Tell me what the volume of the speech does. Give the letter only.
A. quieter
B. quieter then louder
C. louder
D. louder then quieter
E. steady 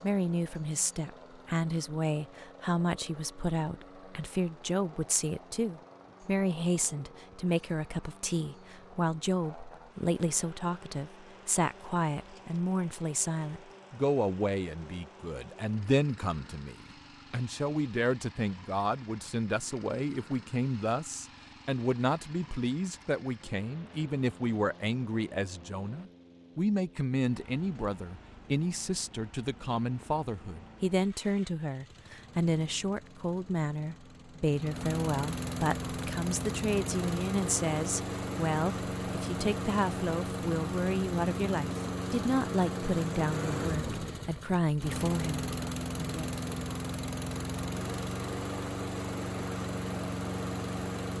E.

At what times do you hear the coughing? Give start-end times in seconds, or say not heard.
not heard.